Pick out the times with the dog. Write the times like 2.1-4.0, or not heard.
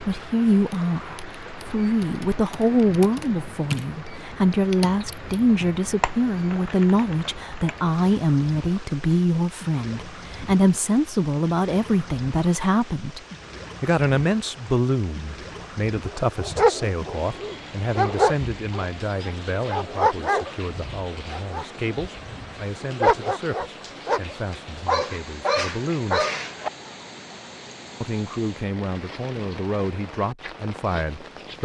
15.6-26.7.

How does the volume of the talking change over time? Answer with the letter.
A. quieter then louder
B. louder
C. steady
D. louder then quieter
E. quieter
E.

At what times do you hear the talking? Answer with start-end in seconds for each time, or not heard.
0.0-13.2, 13.8-26.2, 28.0-31.6.